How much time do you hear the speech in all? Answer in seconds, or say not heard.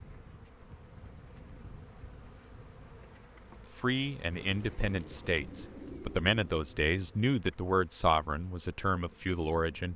6 s.